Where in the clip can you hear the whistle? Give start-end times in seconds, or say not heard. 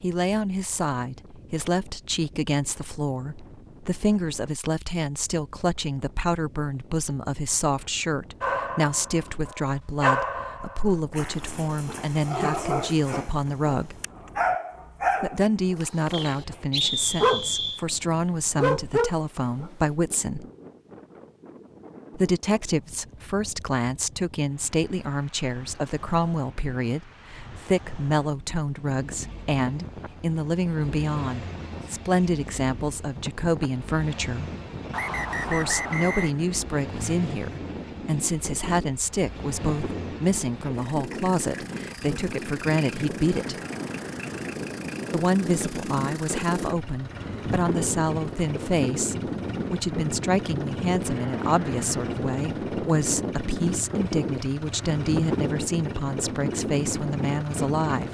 16.1-17.8, 34.9-36.3.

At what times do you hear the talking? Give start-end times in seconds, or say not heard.
0.0-13.9, 15.2-20.4, 22.1-34.5, 35.4-43.5, 45.1-58.0.